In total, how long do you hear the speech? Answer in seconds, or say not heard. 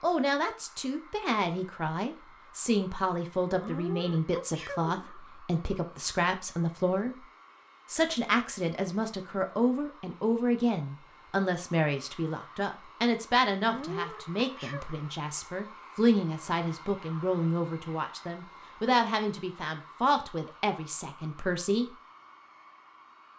21 s.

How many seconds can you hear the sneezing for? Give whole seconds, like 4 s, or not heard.
3 s.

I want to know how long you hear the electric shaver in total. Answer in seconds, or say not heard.
not heard.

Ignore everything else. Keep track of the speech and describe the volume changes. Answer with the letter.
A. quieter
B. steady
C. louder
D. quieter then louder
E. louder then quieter
B.